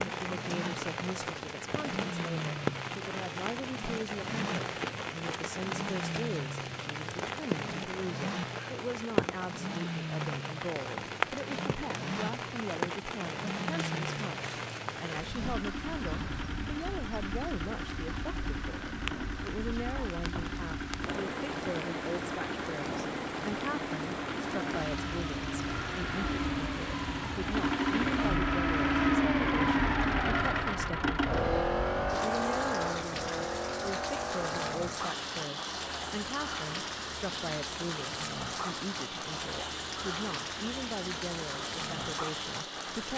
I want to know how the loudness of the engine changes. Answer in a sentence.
The loudness of the engine goes up, then down.